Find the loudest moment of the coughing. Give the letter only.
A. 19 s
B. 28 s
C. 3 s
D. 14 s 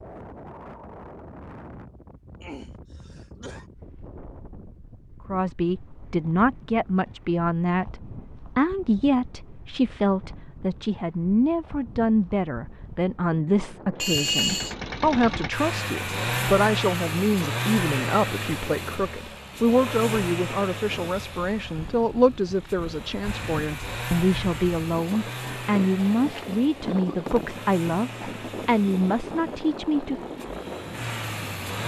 D.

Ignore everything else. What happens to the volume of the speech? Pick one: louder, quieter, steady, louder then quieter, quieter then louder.
steady.